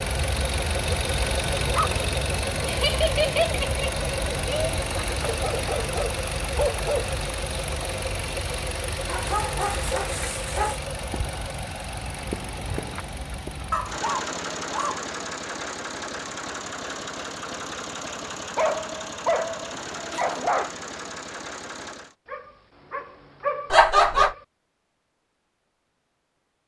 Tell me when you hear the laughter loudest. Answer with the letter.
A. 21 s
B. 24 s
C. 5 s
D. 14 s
B.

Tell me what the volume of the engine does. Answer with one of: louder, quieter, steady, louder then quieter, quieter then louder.
quieter.